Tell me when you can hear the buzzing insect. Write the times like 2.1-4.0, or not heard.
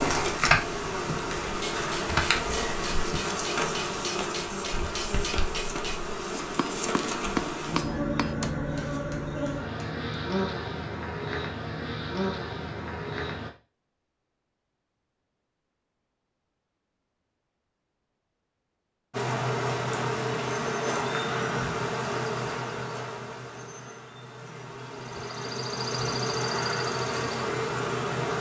0.0-13.5, 19.1-28.3.